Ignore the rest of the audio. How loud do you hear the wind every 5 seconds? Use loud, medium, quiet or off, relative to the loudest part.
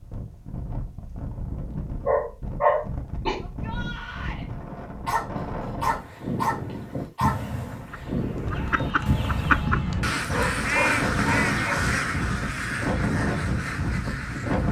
medium, loud, loud.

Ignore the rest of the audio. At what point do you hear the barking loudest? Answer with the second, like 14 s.
3 s.